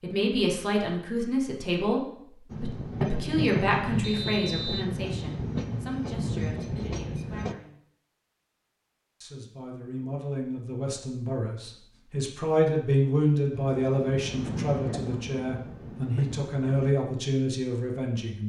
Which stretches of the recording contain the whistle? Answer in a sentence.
You can hear the whistle from 4.0 to 4.8 s.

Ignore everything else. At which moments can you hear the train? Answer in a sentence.
The train can be heard from 2.5 to 7.5 s and from 13.5 to 16.9 s.